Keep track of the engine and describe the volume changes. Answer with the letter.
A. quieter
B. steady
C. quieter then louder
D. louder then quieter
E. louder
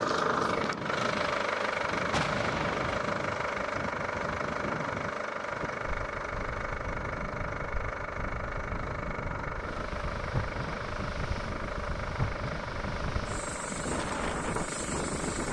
A.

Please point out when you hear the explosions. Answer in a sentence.
You can hear the explosions from 2.1 to 3.0 s.